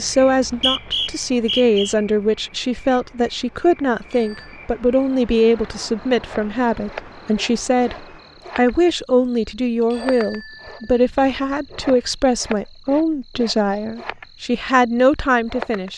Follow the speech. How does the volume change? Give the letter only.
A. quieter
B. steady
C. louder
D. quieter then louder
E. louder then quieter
B.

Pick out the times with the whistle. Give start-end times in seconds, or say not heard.
0.2-1.9.